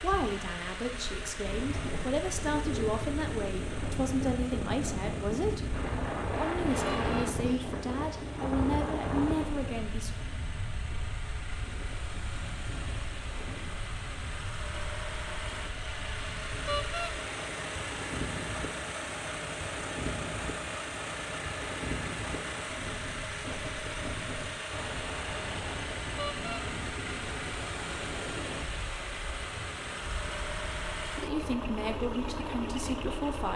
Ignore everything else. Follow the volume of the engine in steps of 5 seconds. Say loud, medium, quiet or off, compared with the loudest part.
medium, medium, medium, loud, loud, loud, loud.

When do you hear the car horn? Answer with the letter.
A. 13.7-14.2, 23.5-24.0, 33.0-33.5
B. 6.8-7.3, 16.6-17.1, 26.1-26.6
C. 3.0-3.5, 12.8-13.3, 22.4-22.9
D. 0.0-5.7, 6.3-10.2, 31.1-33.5
B.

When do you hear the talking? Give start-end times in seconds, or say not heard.
0.0-5.7, 6.3-10.2, 31.1-33.5.